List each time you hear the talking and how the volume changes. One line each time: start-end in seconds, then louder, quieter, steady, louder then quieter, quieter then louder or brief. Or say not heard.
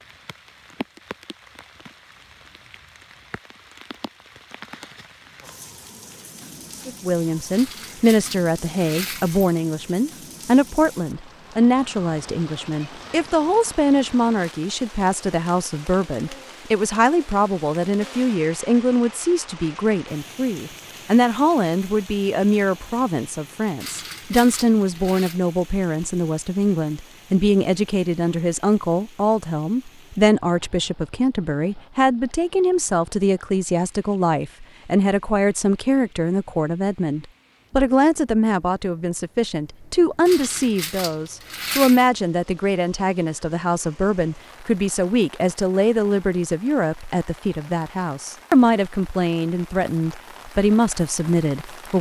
6.8-51.9 steady.